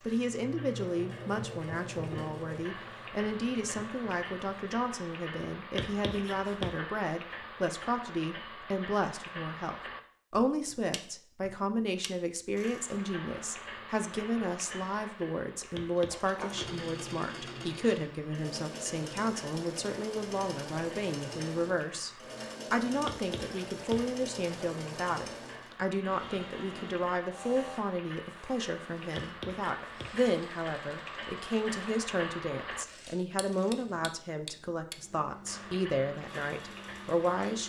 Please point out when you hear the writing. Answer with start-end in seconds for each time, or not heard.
5.8-6.8, 15.7-16.8, 23.1-24.1, 29.1-30.1.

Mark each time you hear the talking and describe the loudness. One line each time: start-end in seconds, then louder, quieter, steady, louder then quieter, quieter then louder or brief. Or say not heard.
0.0-22.1 steady
22.7-37.6 steady.